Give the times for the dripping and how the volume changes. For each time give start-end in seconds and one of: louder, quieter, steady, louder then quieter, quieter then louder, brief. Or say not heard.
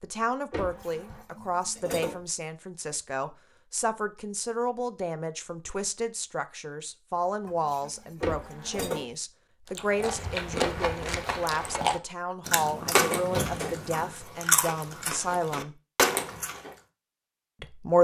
not heard.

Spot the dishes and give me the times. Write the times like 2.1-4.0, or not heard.
0.6-2.2, 7.5-9.2, 12.4-14.1.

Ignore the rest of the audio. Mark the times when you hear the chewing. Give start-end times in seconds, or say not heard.
9.8-16.8.